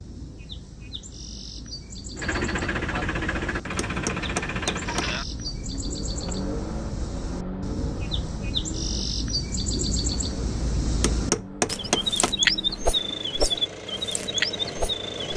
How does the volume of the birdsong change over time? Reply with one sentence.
The volume of the birdsong goes up.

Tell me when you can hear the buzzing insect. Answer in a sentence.
You can't hear the buzzing insect here.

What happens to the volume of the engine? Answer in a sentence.
The volume of the engine goes down.